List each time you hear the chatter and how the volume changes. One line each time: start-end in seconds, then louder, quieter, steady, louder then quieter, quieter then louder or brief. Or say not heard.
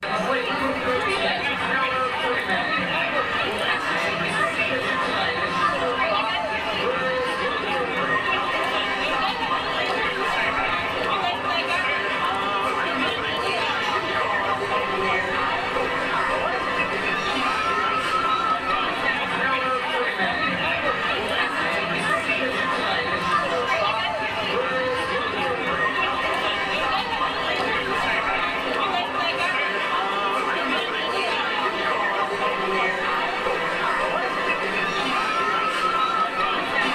0.0-36.8 steady.